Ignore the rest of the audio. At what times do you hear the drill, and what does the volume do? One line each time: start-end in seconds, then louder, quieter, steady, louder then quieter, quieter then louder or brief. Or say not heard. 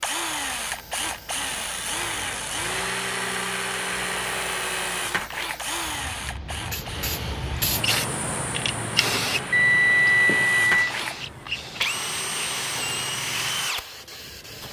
0.0-14.6 quieter then louder.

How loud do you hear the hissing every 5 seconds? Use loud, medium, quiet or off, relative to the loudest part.
quiet, loud, medium.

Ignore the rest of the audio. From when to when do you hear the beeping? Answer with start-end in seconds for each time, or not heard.
9.5-10.9.